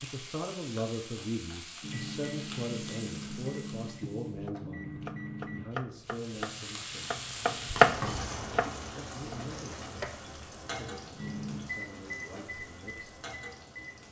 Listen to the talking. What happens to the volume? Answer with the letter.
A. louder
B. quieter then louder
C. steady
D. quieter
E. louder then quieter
D.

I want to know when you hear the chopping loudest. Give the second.
8 s.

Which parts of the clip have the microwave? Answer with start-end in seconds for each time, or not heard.
1.8-5.7, 11.2-14.0.